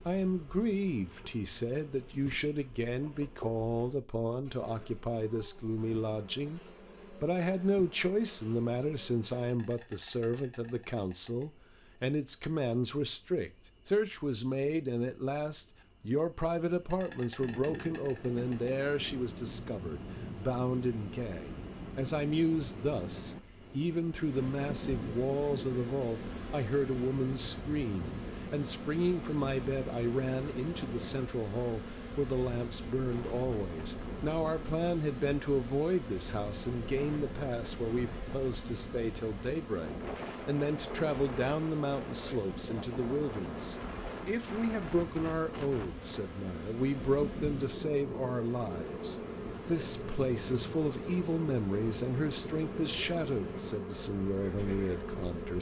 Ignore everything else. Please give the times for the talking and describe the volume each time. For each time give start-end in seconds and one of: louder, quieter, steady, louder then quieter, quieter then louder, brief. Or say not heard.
0.0-55.5 steady.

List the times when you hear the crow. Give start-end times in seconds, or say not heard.
not heard.